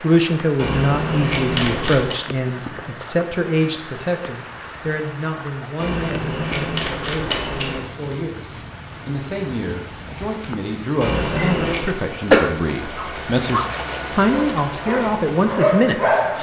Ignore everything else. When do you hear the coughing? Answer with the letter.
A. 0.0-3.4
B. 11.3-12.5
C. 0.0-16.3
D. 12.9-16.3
B.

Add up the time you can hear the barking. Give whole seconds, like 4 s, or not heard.
3 s.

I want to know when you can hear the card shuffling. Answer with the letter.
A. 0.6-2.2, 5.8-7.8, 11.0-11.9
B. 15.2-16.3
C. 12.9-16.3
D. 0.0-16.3
A.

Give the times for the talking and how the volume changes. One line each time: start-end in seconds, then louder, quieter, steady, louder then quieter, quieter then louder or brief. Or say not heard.
0.0-16.3 quieter then louder.